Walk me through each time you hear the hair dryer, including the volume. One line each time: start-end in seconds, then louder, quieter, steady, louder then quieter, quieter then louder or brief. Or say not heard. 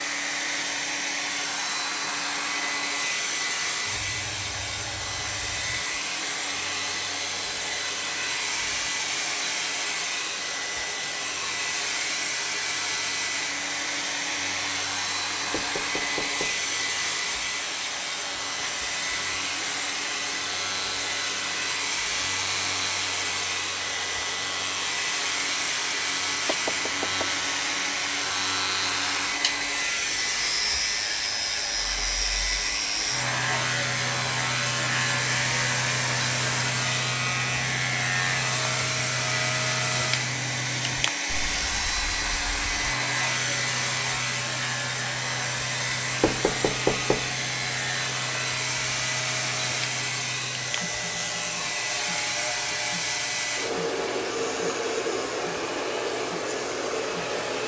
0.0-57.6 steady.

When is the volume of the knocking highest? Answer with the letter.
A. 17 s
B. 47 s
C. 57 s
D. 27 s
B.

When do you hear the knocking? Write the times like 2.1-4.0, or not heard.
15.5-16.6, 26.4-27.4, 46.2-47.3.